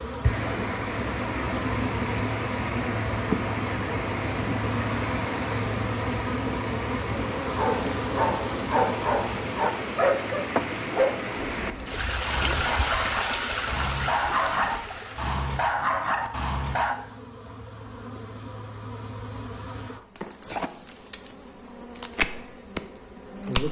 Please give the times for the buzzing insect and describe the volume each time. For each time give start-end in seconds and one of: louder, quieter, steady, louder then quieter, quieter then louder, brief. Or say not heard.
0.0-23.6 quieter then louder.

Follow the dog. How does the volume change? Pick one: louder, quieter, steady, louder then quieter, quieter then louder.
steady.